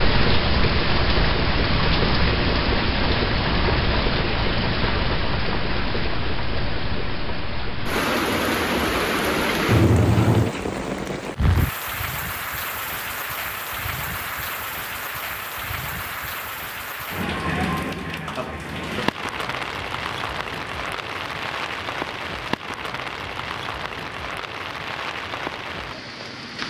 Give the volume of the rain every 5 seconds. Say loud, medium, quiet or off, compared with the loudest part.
loud, loud, medium, medium, medium, medium.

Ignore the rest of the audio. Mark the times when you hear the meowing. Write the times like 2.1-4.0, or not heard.
9.7-10.5.